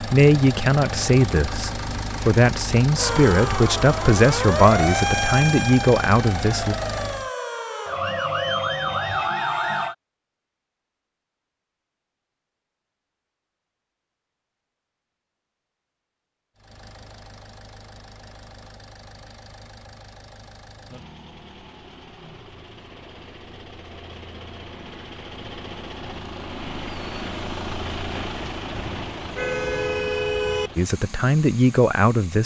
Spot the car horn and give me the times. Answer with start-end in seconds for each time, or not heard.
28.8-30.7.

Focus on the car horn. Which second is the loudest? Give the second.
30 s.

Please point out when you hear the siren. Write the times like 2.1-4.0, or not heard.
3.0-9.9.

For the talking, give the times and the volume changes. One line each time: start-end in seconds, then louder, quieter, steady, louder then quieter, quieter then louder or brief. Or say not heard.
0.0-6.8 steady
30.8-32.4 brief.